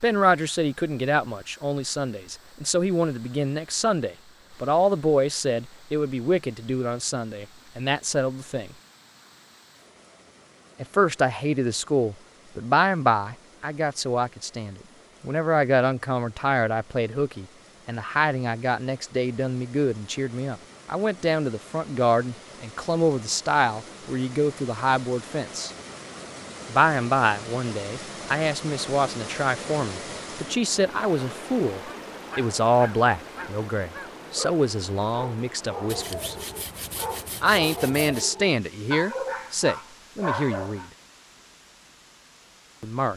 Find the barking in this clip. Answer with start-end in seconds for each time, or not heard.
31.9-40.9.